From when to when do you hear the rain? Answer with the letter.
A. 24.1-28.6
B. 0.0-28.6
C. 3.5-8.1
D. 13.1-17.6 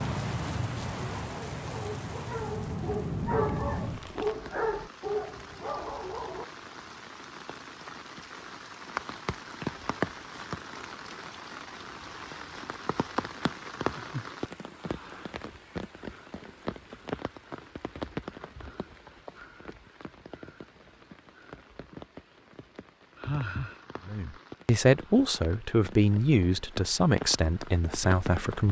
B.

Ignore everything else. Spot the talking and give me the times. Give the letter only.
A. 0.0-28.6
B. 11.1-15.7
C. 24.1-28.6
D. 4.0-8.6
C.